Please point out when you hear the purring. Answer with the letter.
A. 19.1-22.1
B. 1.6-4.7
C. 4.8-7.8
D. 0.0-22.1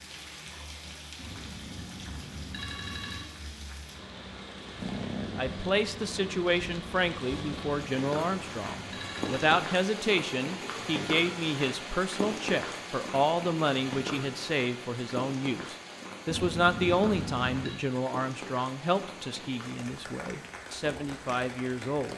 C.